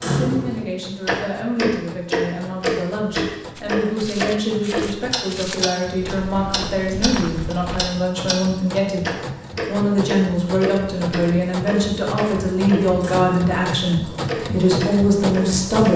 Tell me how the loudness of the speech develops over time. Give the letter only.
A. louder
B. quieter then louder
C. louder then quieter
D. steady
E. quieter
A.